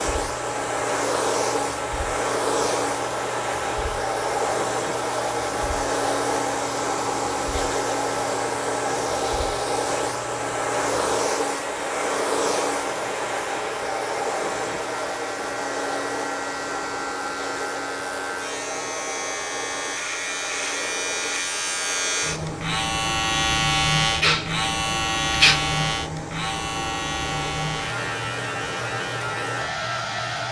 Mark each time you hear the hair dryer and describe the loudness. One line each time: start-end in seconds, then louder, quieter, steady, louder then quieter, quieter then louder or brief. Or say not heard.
0.0-30.4 quieter.